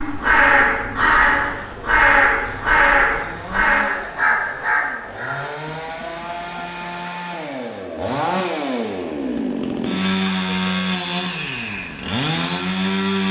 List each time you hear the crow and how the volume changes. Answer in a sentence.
The crow can be heard from 0.0 to 7.1 s, getting quieter.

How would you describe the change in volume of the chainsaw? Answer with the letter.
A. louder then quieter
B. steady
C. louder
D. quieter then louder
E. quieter
C.